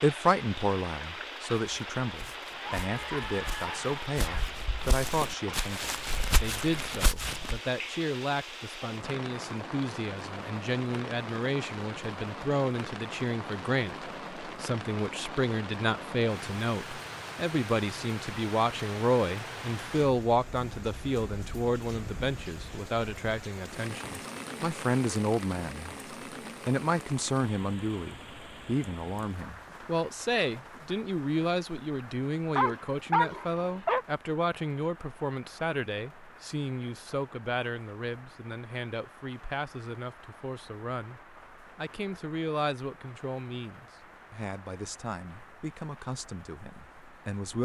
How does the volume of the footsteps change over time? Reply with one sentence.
The loudness of the footsteps goes up.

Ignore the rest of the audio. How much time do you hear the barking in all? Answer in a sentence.
You can hear the barking for 3 seconds altogether.